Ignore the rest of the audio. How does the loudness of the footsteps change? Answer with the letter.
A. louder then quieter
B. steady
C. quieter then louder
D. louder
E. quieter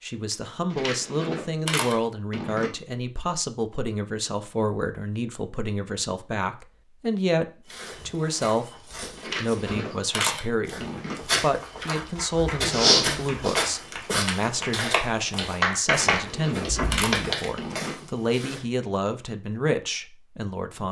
A.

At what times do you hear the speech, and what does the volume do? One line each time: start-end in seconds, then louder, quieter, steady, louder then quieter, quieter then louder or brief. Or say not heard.
0.0-7.5 steady
8.1-20.8 steady.